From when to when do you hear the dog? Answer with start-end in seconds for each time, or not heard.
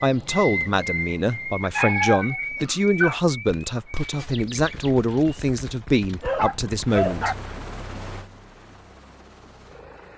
1.6-3.2, 6.2-7.3.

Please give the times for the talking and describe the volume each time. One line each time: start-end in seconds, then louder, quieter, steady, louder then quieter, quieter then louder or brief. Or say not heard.
0.0-7.3 steady.